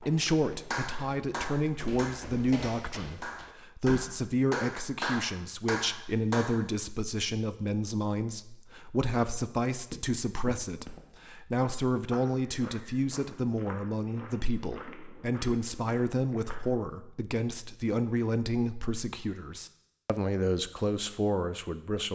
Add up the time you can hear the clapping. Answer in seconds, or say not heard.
6 s.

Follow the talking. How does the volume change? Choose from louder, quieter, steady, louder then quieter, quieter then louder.
steady.